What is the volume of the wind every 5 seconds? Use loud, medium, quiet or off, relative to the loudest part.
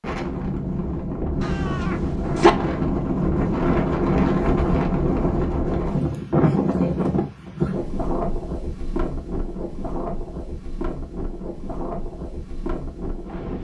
loud, loud, medium.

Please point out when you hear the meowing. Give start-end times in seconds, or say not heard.
1.4-2.5.